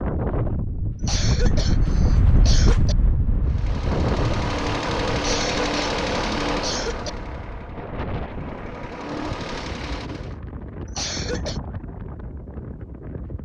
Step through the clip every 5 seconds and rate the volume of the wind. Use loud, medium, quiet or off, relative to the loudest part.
loud, medium, medium.